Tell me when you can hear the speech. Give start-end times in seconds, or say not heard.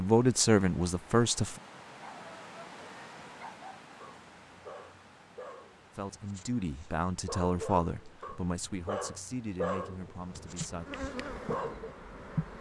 0.0-1.6, 6.0-10.8.